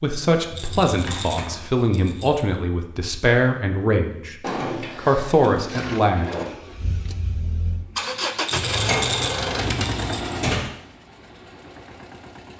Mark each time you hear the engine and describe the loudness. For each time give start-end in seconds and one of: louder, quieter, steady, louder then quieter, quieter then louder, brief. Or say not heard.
5.8-12.5 louder then quieter.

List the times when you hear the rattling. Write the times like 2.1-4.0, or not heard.
0.6-2.5, 8.4-10.3.